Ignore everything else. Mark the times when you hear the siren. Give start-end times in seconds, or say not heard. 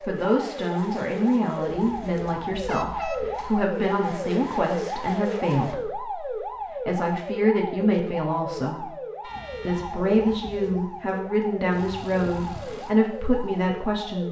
0.0-14.2.